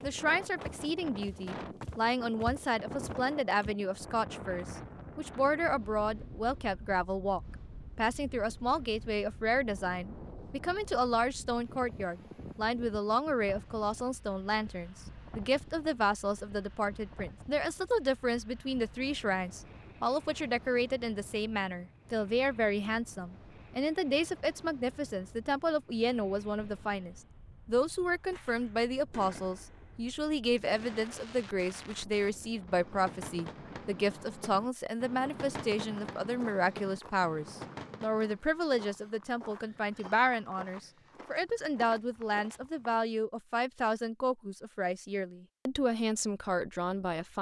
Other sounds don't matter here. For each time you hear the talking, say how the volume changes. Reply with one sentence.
You can hear the talking from 0.0 to 47.3 s, at a steady volume.